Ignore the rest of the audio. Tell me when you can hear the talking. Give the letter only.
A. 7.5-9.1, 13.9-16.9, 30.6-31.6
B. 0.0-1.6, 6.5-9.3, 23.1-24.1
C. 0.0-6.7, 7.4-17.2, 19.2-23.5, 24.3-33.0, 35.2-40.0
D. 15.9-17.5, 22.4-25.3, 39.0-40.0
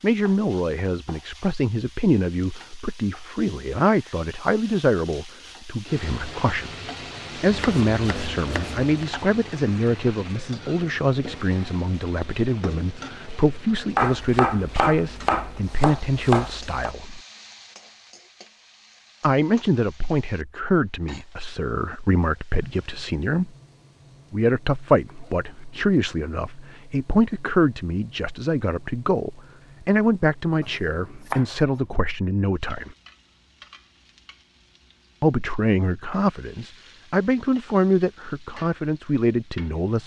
C.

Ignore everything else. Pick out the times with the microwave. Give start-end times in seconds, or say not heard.
not heard.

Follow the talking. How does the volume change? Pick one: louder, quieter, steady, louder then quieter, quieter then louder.
steady.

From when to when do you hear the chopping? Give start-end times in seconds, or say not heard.
7.5-9.1, 13.9-16.9, 30.6-31.6.